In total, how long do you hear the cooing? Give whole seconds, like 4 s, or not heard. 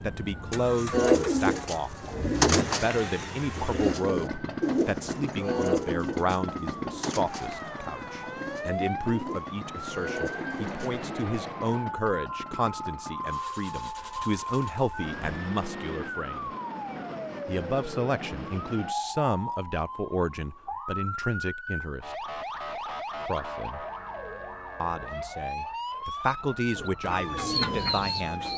12 s.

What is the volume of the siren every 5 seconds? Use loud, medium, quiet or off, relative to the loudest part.
medium, loud, loud, loud, loud, loud.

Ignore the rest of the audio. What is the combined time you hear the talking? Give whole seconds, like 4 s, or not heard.
26 s.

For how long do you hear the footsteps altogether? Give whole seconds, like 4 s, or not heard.
not heard.